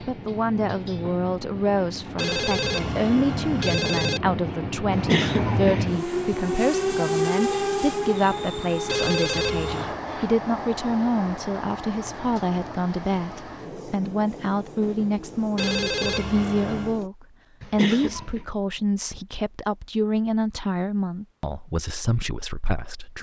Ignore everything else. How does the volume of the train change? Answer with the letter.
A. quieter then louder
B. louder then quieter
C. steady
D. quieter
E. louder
B.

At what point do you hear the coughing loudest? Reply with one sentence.
The loudest moment of the coughing is at 5 seconds.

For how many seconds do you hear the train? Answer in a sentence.
The train can be heard for 17 seconds in total.